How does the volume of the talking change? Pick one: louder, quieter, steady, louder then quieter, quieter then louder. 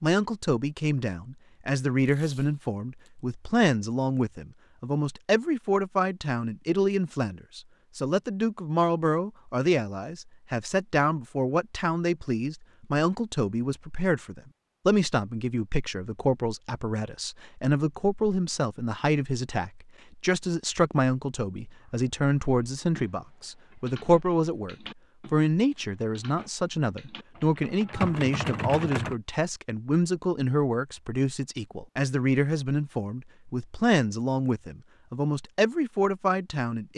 steady.